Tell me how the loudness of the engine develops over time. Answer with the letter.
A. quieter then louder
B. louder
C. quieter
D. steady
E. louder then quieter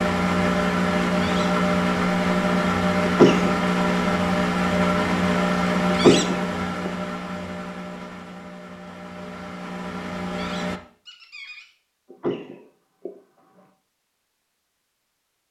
C.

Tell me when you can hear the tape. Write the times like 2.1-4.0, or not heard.
not heard.